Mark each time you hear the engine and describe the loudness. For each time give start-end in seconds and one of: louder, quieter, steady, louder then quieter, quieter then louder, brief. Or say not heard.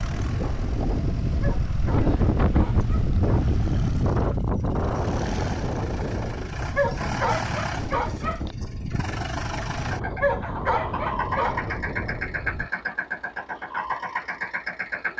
0.0-15.1 louder.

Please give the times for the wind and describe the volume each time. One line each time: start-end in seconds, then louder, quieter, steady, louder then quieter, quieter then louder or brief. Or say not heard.
0.0-12.7 quieter.